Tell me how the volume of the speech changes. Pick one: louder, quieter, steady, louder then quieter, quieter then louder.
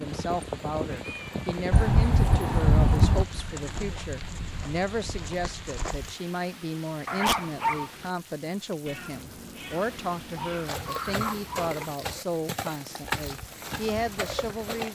steady.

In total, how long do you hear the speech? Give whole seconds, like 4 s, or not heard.
15 s.